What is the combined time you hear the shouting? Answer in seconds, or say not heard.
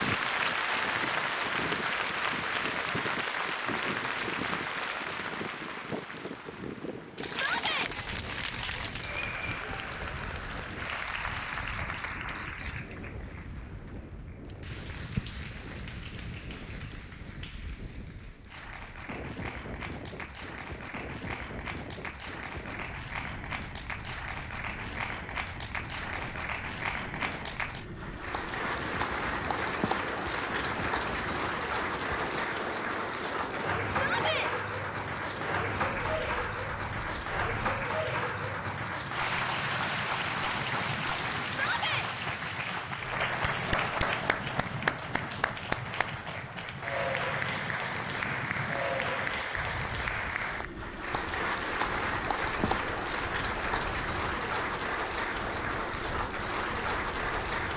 2 s.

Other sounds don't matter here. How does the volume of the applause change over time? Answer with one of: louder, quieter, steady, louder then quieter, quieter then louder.
quieter then louder.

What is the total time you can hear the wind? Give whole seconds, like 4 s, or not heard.
58 s.